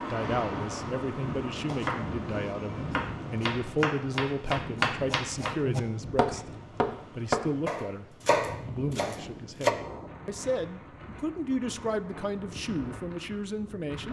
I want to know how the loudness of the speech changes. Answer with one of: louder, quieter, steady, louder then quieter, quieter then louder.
steady.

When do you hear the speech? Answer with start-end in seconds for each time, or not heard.
0.1-6.5, 7.1-14.0.